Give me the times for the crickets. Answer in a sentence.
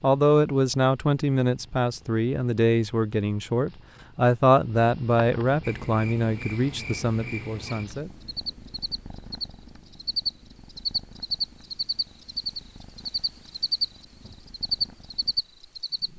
The crickets can be heard from 5.6 to 16.1 s.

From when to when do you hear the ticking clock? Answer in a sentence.
The ticking clock can't be heard in this clip.